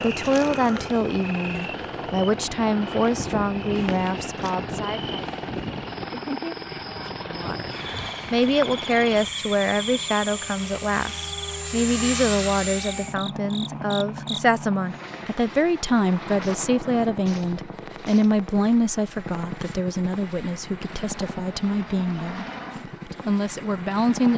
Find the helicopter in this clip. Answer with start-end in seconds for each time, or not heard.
0.0-24.3.